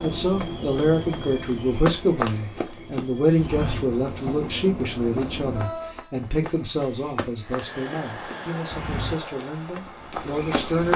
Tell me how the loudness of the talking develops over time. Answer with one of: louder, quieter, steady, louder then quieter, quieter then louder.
quieter.